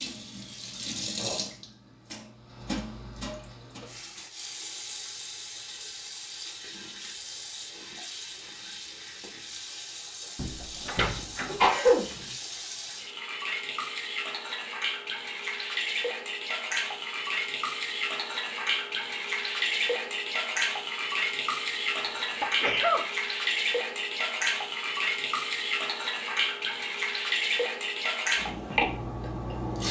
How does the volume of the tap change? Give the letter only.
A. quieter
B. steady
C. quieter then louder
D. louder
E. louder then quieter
D.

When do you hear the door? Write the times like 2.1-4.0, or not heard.
10.3-11.7.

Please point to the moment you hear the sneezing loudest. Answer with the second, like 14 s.
12 s.